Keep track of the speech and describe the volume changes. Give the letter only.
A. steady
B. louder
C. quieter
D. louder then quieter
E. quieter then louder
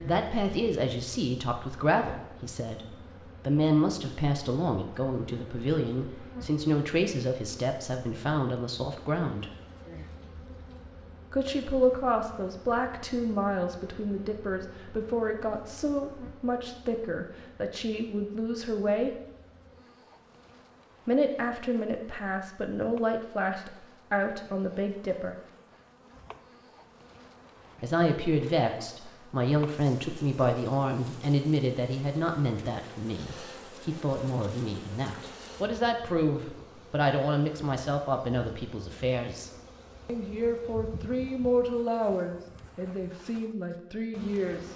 A.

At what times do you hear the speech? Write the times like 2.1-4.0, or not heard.
0.0-9.4, 11.3-19.1, 21.1-25.4, 27.8-44.7.